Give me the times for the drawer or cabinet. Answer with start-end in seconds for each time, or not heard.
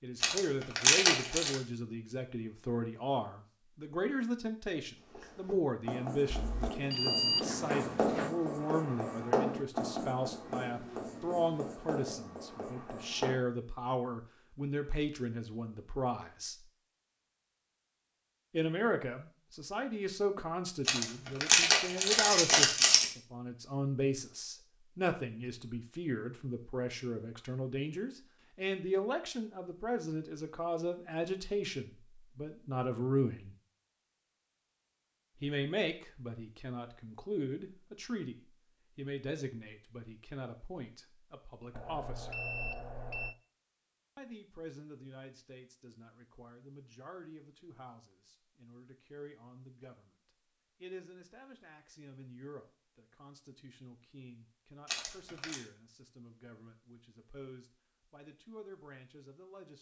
not heard.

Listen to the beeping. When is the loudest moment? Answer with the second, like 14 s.
7 s.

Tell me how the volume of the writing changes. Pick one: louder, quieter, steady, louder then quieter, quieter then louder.
louder then quieter.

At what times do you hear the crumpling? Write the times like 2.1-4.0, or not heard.
0.2-1.6, 20.9-23.1, 54.9-55.5.